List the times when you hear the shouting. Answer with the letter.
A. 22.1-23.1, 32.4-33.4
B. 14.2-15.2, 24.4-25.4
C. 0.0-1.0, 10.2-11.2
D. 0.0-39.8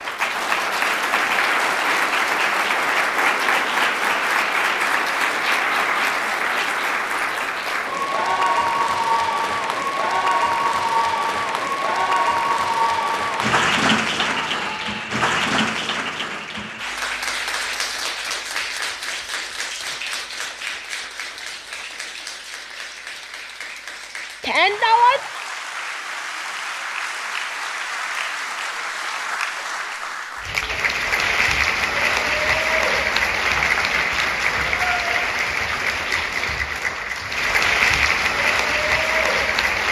B.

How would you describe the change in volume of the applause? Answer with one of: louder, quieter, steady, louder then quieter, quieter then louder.
quieter then louder.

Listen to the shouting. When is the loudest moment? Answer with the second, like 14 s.
25 s.